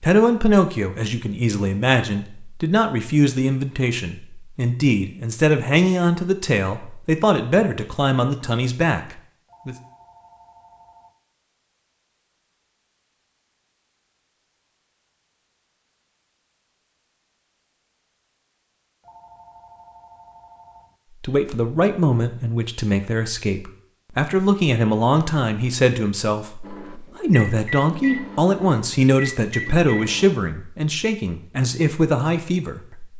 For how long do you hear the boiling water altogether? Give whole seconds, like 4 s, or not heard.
not heard.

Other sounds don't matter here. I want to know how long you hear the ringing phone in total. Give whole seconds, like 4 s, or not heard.
4 s.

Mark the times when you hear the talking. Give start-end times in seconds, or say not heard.
0.0-9.8, 21.2-33.1.